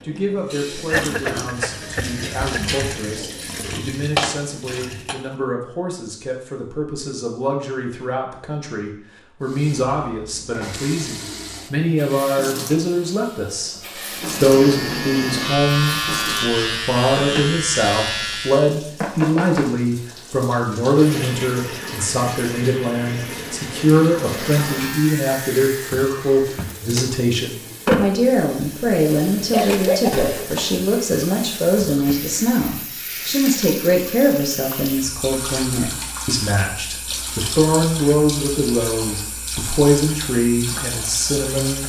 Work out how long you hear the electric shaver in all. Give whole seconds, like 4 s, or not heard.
7 s.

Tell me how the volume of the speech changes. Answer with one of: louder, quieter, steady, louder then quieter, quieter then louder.
louder.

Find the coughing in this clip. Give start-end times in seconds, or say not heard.
0.8-2.6, 29.4-30.3.